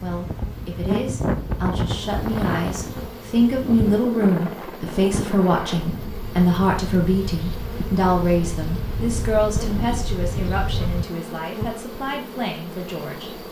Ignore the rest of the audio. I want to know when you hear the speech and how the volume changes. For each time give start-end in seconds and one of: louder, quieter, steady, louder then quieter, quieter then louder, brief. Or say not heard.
0.0-13.4 louder then quieter.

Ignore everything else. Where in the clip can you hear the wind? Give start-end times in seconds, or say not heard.
0.0-11.1.